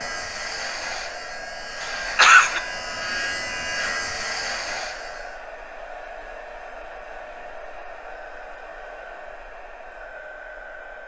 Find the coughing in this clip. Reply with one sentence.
The coughing can be heard from 1.8 to 2.6 s.